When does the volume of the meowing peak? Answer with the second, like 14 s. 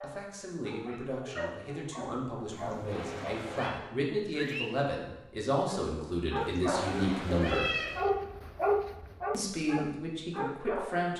8 s.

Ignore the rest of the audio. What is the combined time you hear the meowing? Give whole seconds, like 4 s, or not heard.
3 s.